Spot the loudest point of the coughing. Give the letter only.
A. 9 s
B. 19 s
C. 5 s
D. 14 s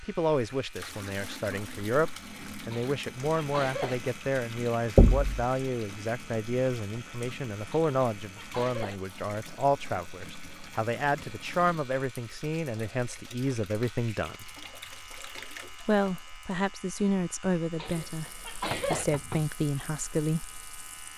B.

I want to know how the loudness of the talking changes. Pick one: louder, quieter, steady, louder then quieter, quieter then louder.
steady.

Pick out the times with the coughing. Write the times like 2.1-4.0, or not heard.
2.7-4.0, 7.7-9.0, 17.8-19.1.